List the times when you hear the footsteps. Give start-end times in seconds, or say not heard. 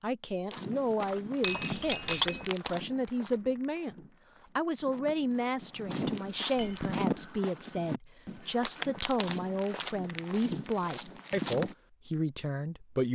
0.5-11.8.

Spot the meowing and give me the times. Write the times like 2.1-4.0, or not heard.
not heard.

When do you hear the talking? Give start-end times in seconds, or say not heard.
0.0-4.0, 4.5-13.0.